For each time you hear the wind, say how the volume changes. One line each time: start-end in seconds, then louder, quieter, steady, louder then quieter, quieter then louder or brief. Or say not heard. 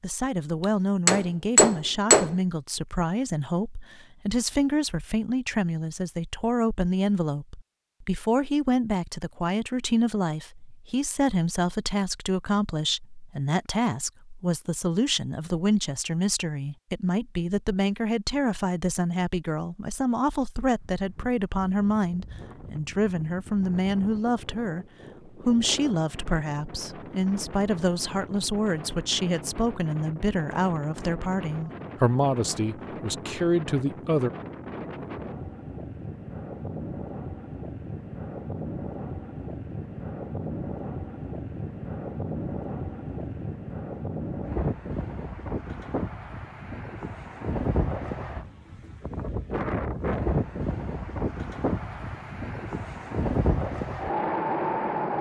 20.8-55.1 louder.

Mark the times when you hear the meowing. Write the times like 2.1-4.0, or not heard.
not heard.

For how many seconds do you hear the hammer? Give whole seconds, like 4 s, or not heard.
2 s.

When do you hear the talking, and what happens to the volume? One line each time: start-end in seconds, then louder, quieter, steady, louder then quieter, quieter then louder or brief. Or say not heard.
0.0-34.3 steady.